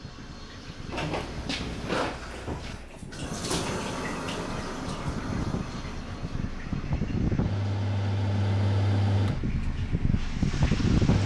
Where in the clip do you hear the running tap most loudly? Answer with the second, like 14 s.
4 s.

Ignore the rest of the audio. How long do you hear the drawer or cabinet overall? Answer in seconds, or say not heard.
2 s.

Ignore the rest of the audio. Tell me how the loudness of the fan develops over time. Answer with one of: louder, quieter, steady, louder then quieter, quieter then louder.
louder.